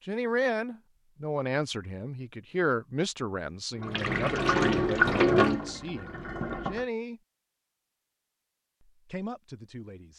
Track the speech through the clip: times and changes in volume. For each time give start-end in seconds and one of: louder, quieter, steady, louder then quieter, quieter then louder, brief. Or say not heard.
0.1-7.2 quieter
8.9-10.1 brief.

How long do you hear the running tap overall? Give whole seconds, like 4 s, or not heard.
3 s.